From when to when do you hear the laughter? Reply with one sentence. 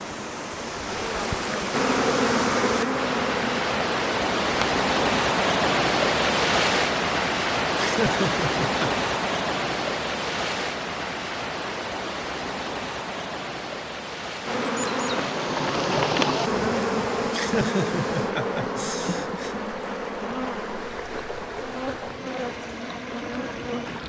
The laughter can be heard from 7.8 to 9.1 s and from 17.3 to 19.6 s.